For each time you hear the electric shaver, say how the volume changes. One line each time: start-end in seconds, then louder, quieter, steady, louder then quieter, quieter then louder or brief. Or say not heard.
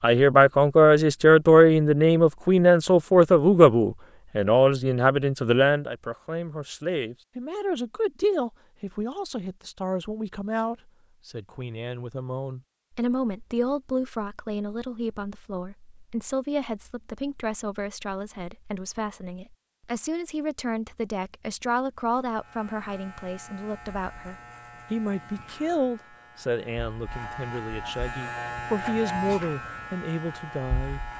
22.4-31.1 louder.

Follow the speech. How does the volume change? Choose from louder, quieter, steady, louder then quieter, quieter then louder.
quieter.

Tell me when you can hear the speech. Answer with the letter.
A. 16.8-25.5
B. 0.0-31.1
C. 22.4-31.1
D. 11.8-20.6
B.